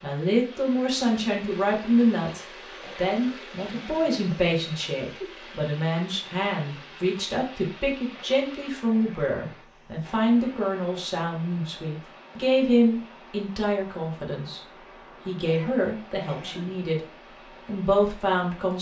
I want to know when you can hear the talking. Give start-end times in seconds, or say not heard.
0.0-14.6, 15.2-17.0, 17.6-18.7.